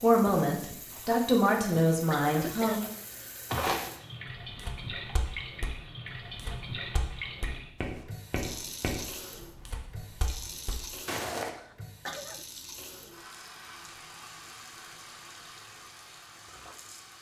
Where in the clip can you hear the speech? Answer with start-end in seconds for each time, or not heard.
0.0-2.8.